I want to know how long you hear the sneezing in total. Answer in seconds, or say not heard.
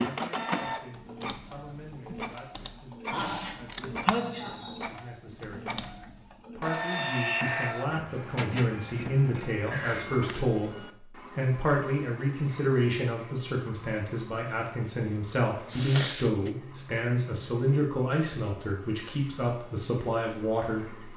3 s.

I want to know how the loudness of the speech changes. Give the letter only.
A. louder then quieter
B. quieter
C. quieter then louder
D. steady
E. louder
E.